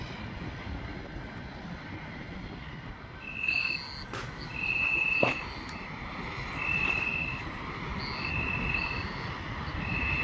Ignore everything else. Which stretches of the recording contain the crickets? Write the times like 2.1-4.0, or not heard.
3.2-10.1.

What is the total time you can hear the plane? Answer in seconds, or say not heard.
10 s.